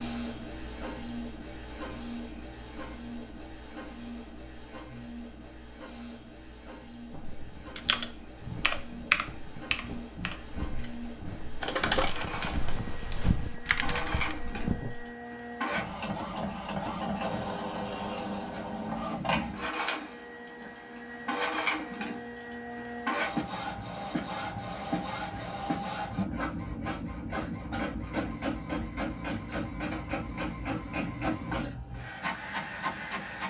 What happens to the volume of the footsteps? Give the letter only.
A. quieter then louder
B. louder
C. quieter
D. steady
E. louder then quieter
B.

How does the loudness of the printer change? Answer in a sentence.
The volume of the printer goes up.